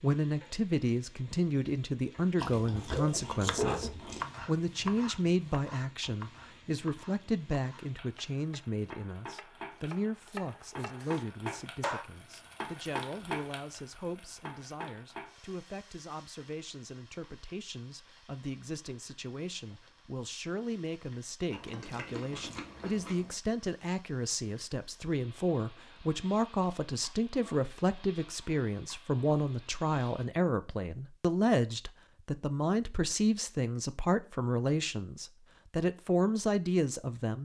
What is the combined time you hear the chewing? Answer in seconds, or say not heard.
4 s.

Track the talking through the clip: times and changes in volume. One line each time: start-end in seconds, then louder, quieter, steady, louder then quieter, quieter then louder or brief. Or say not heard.
0.0-37.4 quieter then louder.